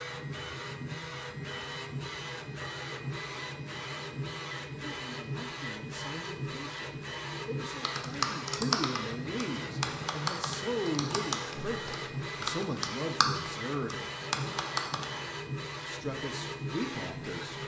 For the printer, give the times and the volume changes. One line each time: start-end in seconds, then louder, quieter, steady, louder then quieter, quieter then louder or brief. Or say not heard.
0.0-17.6 steady.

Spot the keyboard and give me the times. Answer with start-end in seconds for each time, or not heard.
7.8-15.3.